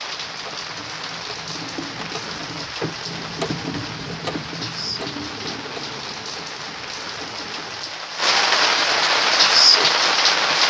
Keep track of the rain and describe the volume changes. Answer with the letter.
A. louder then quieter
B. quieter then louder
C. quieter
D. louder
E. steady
D.